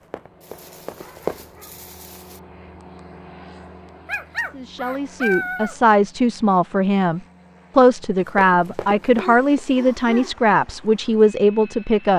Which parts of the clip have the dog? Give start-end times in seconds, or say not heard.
0.4-2.4, 4.0-5.8, 9.2-10.3.